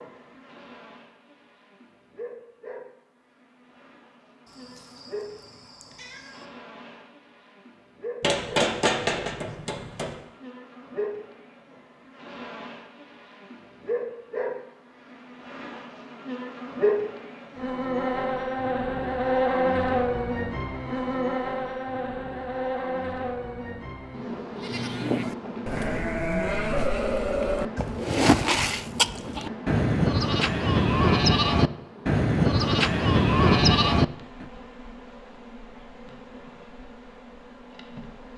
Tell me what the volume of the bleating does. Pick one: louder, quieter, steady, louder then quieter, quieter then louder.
louder.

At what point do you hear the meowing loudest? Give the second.
6 s.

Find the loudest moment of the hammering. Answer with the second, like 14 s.
9 s.